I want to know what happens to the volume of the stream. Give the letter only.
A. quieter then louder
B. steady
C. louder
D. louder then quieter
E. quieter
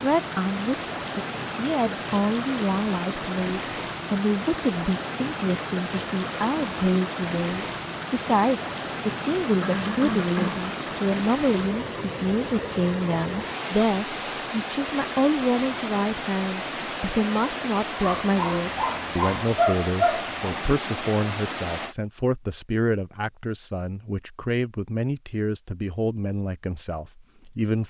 B.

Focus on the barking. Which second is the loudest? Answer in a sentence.
The volume of the barking peaks at 20 seconds.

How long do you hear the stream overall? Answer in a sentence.
The stream can be heard for 22 seconds in total.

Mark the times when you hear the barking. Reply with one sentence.
You can hear the barking from 18.0 to 20.4 s.